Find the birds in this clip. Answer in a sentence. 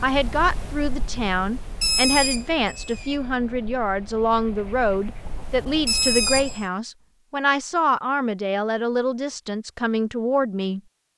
The birds can be heard from 0.0 to 6.7 s.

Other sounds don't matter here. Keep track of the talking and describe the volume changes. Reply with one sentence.
The loudness of the talking stays about the same.